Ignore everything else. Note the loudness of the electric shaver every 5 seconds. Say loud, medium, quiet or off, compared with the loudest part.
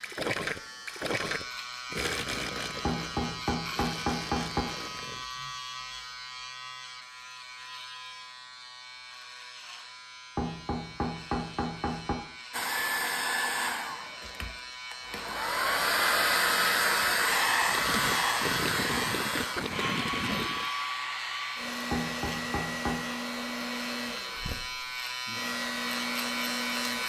medium, medium, medium, loud, medium, loud.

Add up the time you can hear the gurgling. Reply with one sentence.
You can hear the gurgling for 8 seconds altogether.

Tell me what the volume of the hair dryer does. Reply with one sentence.
The loudness of the hair dryer goes up, then down.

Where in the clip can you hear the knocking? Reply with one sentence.
The knocking can be heard from 2.9 to 4.7 s, from 10.3 to 12.2 s and from 21.9 to 23.0 s.